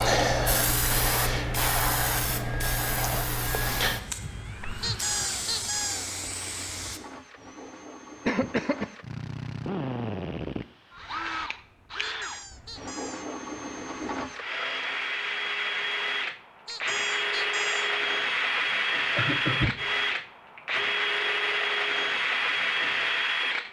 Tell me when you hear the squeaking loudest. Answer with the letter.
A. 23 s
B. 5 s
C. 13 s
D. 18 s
B.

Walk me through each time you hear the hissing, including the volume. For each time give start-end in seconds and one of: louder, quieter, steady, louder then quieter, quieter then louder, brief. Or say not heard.
0.0-7.0 quieter.